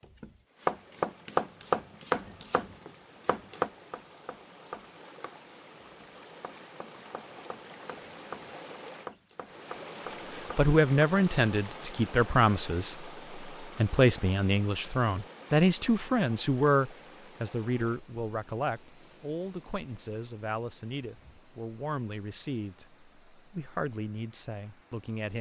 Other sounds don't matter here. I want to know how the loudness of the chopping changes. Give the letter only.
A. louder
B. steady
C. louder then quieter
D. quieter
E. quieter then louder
E.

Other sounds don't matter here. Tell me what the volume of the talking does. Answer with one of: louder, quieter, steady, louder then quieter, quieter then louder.
quieter.